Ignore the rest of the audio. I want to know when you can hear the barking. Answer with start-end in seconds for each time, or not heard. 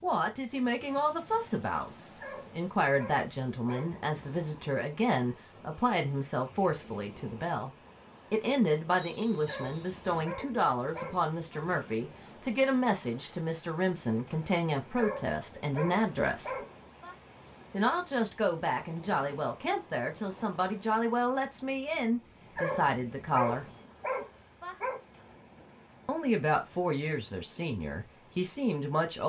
2.2-4.0, 9.4-11.7, 14.9-17.1, 22.6-25.0.